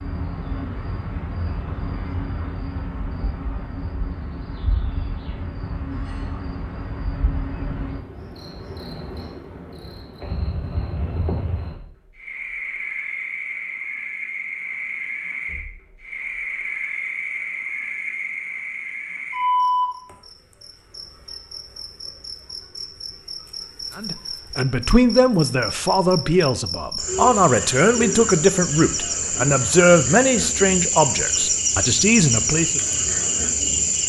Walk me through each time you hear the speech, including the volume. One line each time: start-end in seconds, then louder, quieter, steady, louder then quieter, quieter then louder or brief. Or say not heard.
23.9-32.8 steady.